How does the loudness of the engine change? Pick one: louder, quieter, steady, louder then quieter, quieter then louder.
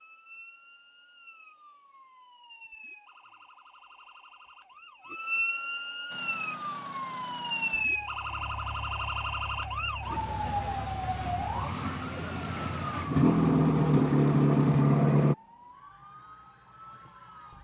louder.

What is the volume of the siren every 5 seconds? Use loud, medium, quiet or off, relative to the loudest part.
quiet, loud, loud, quiet.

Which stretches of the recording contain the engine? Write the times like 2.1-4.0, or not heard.
6.1-15.3.